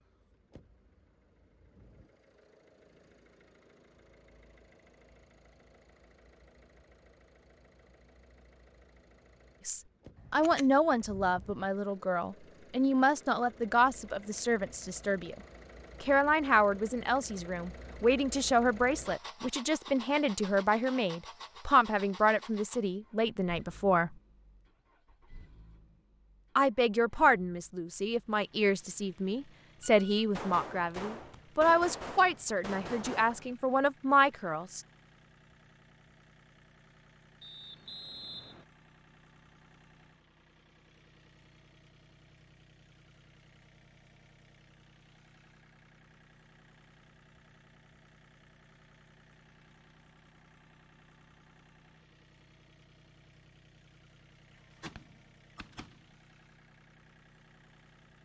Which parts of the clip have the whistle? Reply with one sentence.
You can hear the whistle from 37.4 to 38.6 s.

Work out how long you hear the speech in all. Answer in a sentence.
You can hear the speech for 22 seconds altogether.